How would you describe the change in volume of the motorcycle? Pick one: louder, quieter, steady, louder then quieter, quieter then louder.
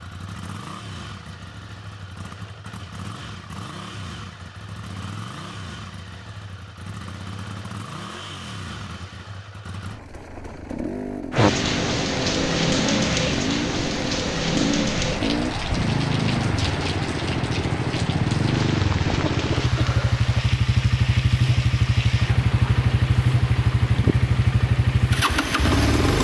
louder.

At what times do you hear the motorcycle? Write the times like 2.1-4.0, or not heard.
0.0-26.1.